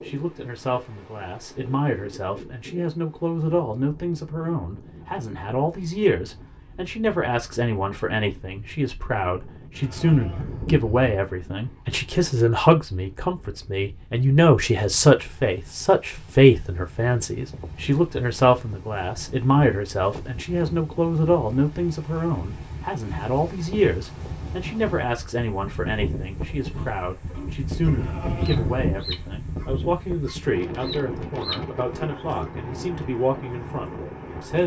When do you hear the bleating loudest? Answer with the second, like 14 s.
29 s.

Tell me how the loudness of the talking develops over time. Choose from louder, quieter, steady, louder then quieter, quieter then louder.
louder then quieter.